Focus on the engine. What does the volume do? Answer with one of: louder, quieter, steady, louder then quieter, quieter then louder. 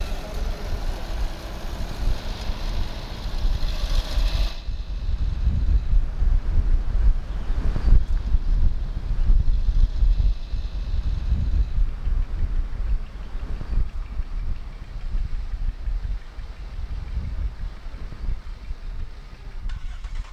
quieter.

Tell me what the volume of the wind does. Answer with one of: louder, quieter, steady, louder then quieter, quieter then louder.
louder then quieter.